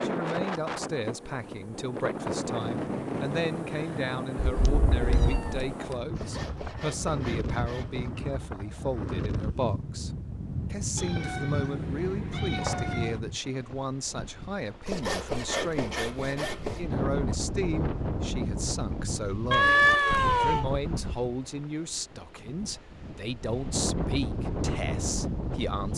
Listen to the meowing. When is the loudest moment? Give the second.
20 s.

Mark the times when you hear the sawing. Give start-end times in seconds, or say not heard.
6.2-8.2, 14.8-16.9.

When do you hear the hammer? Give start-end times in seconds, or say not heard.
not heard.